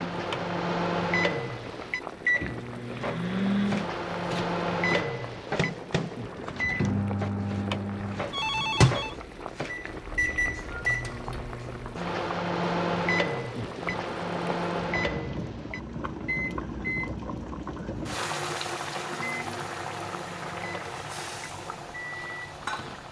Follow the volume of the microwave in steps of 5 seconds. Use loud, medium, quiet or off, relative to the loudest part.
loud, loud, loud, medium, quiet.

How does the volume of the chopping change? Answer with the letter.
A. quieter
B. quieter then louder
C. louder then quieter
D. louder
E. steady
E.